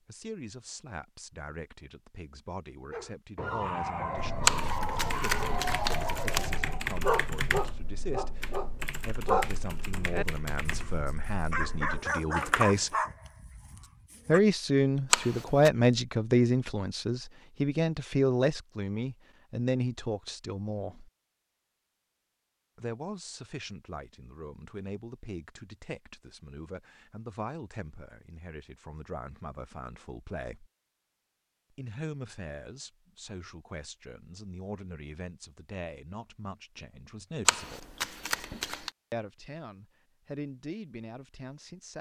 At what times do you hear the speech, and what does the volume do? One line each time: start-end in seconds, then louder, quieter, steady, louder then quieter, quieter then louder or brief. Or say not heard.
0.1-12.9 louder
14.2-21.1 quieter
22.8-30.7 steady
31.8-38.0 steady
39.1-41.9 brief.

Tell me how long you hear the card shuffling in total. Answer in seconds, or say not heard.
4 s.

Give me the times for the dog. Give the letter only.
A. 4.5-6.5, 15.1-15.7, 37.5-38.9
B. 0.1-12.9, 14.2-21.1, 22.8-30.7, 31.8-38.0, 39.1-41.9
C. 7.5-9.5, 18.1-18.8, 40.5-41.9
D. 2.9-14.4
D.